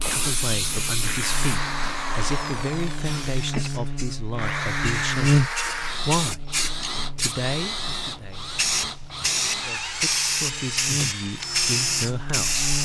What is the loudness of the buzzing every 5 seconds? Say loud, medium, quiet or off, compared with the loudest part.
medium, loud, medium.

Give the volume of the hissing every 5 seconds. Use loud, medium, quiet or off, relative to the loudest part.
medium, loud, loud.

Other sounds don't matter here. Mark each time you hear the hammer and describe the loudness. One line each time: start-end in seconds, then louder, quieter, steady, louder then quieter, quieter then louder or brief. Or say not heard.
not heard.